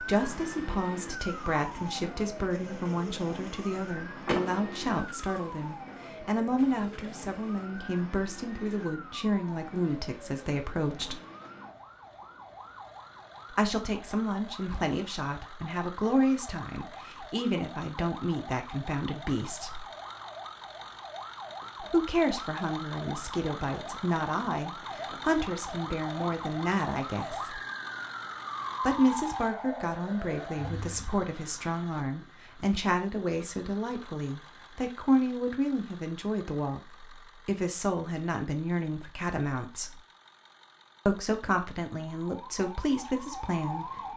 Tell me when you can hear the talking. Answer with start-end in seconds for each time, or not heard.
0.0-11.2, 13.5-19.9, 21.8-27.6, 28.8-40.0, 41.0-44.1.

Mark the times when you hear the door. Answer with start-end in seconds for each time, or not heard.
4.2-5.0.